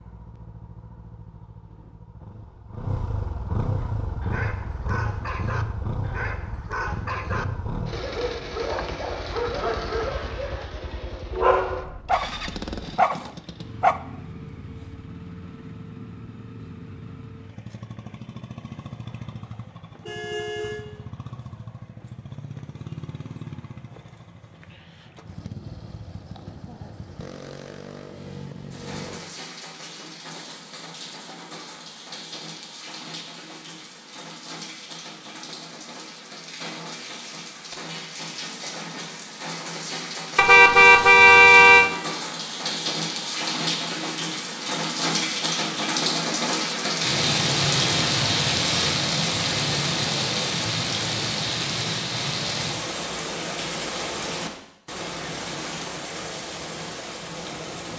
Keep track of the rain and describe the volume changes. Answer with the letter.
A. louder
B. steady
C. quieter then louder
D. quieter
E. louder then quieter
E.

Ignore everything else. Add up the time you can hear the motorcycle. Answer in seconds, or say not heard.
29 s.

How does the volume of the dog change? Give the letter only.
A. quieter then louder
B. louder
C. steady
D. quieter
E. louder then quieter
B.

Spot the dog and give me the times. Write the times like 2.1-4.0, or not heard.
3.8-14.0.